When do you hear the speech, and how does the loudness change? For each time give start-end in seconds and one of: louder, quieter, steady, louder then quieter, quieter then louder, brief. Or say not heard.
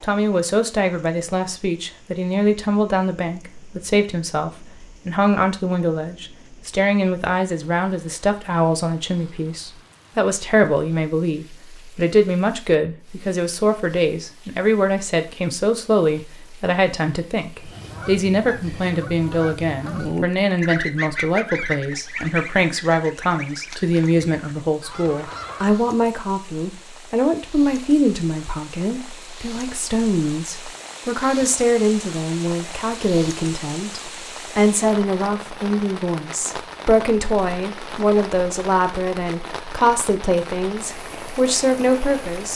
0.0-42.5 steady.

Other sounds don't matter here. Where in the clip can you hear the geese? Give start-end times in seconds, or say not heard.
17.6-25.9.